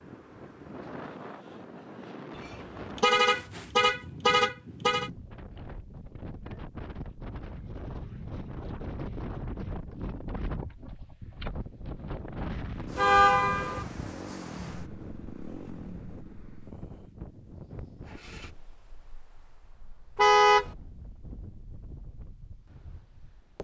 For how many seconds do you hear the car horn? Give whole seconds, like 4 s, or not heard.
4 s.